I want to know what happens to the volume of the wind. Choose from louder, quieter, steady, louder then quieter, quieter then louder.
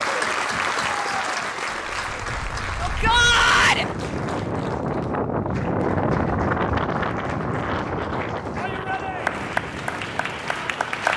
louder then quieter.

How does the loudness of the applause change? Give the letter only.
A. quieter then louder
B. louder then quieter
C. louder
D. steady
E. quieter
A.